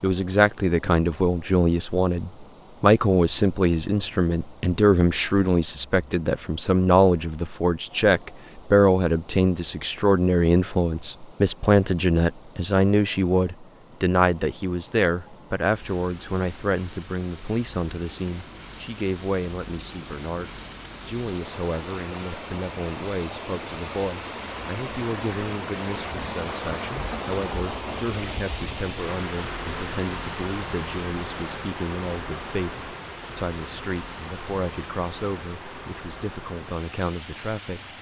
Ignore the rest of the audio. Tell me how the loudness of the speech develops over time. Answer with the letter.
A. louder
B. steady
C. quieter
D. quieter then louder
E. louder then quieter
C.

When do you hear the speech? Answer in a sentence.
You can hear the speech from 0.0 to 37.8 s.